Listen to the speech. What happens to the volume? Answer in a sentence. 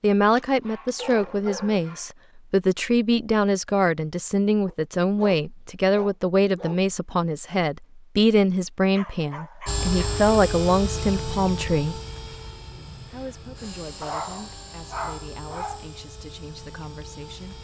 The volume of the speech goes down.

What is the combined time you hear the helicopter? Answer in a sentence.
You can hear the helicopter for 8 seconds altogether.